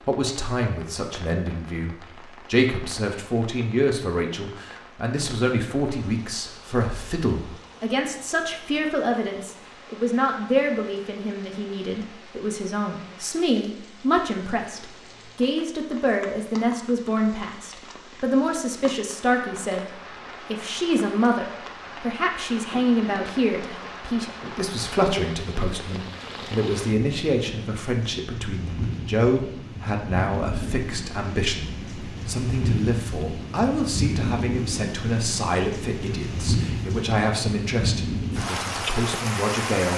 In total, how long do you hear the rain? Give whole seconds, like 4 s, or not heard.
40 s.